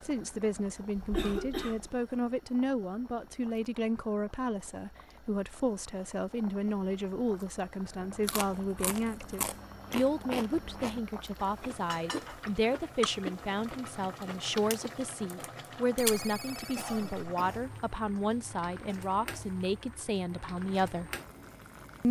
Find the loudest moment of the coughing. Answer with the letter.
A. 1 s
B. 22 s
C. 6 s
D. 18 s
A.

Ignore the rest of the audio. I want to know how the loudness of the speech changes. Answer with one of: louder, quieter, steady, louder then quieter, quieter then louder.
steady.